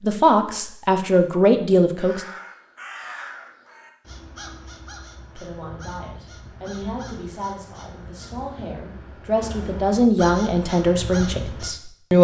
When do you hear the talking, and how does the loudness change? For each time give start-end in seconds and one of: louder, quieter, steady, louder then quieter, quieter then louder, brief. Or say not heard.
0.0-2.2 brief
5.3-12.1 louder.